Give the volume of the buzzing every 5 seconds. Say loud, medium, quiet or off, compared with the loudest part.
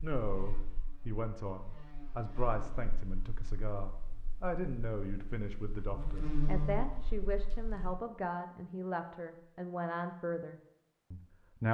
quiet, loud, off.